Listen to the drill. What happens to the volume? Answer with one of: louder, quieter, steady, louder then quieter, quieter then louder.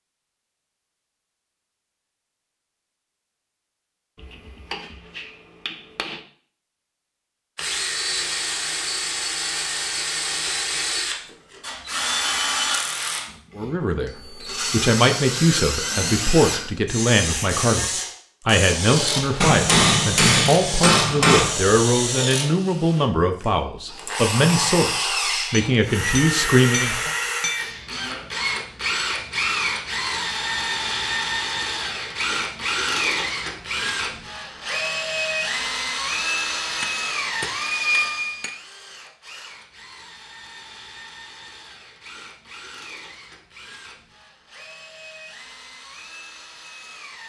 quieter.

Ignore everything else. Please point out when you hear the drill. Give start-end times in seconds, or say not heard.
7.5-47.2.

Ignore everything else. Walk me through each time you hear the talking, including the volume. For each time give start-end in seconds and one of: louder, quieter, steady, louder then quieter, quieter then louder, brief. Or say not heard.
13.6-14.1 brief
14.7-27.1 steady.